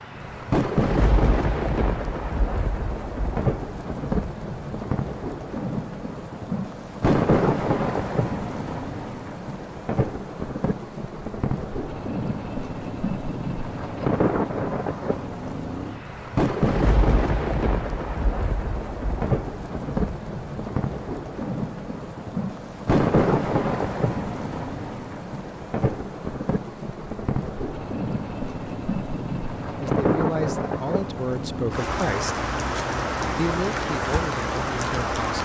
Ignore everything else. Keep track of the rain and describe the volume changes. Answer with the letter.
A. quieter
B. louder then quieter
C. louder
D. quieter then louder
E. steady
E.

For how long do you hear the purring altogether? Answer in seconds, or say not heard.
not heard.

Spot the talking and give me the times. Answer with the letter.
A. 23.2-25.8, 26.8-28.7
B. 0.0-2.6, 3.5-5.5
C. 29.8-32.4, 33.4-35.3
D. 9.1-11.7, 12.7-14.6
C.